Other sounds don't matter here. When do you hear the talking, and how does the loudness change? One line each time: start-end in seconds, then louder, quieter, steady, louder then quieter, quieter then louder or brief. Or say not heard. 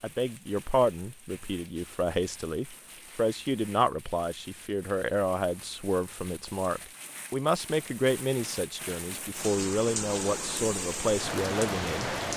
0.0-12.2 steady.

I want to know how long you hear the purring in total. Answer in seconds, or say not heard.
not heard.